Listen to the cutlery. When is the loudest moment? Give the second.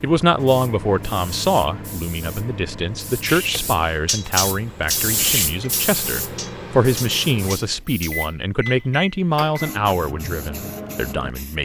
4 s.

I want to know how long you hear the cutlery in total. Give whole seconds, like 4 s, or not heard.
5 s.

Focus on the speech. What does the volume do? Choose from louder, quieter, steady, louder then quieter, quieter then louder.
steady.